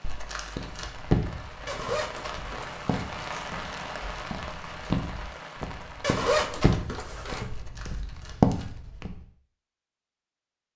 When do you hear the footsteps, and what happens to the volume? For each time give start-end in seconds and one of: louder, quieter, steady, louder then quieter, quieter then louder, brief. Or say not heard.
0.6-9.2 quieter then louder.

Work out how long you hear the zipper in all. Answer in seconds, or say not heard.
3 s.